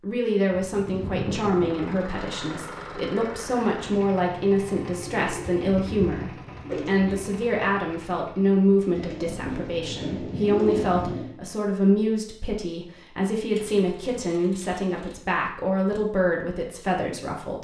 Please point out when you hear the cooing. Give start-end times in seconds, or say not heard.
0.5-2.1, 4.8-7.2, 8.9-11.3, 13.5-15.2.